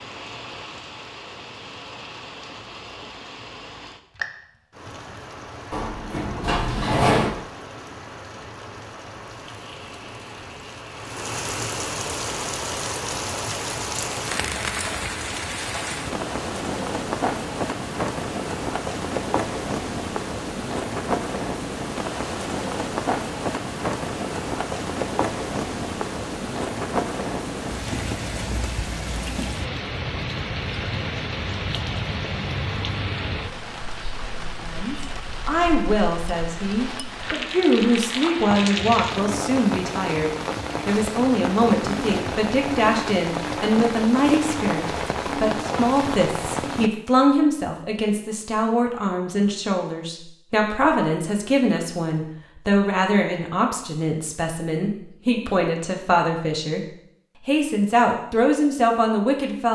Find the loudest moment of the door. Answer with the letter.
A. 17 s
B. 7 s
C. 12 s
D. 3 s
B.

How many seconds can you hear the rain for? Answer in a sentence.
You can hear the rain for 47 seconds altogether.